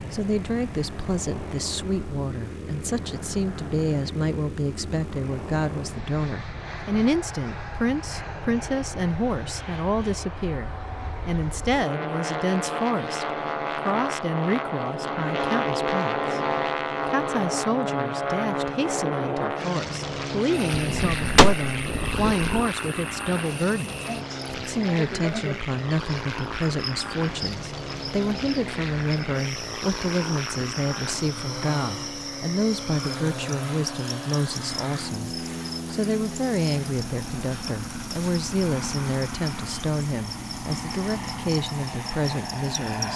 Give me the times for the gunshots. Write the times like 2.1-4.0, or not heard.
20.8-22.6.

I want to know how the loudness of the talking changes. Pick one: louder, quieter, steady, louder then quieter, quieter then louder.
steady.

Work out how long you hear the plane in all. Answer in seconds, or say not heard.
43 s.